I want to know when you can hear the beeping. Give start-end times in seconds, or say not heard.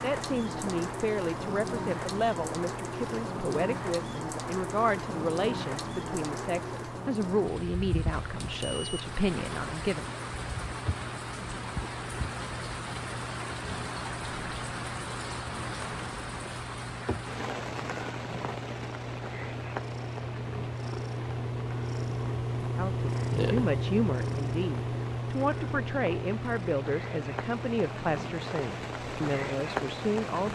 8.1-9.1.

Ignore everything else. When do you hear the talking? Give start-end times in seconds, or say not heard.
0.0-10.1, 22.8-30.4.